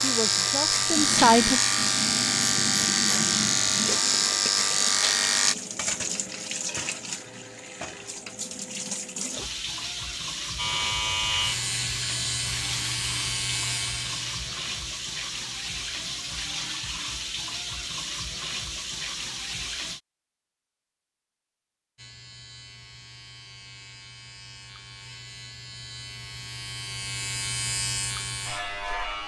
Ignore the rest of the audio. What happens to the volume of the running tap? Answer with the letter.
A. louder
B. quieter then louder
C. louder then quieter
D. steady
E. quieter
D.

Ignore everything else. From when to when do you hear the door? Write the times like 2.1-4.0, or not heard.
not heard.